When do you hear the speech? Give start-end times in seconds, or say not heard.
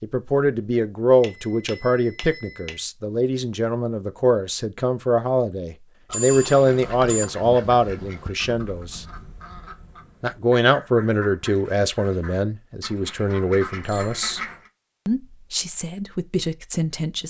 0.0-9.1, 10.2-14.4, 15.1-17.2.